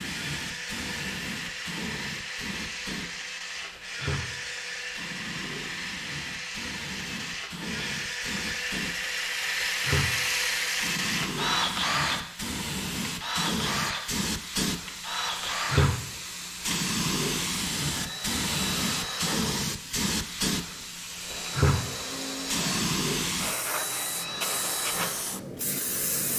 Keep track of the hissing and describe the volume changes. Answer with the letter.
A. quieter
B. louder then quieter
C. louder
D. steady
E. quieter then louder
C.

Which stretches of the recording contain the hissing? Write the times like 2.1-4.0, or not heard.
0.0-26.3.